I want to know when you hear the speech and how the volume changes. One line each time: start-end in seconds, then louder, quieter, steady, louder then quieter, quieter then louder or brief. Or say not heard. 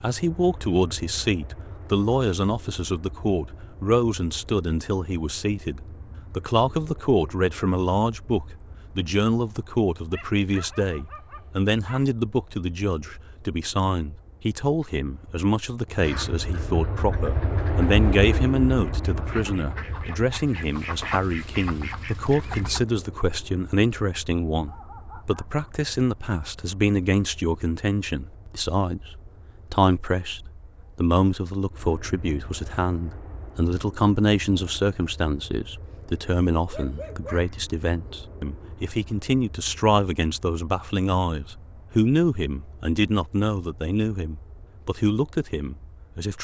0.0-46.3 steady.